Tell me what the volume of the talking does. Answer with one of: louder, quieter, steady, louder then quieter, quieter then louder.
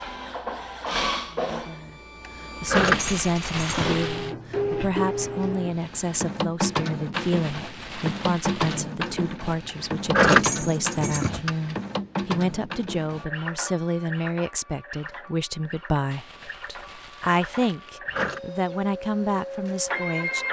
steady.